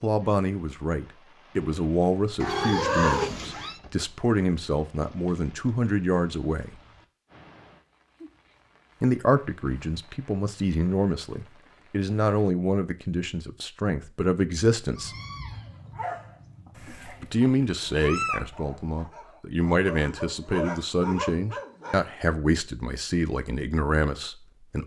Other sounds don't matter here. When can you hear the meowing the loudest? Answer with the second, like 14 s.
3 s.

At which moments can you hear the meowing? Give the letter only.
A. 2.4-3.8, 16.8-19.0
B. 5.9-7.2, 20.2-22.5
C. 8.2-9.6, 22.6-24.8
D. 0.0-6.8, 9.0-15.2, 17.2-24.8
A.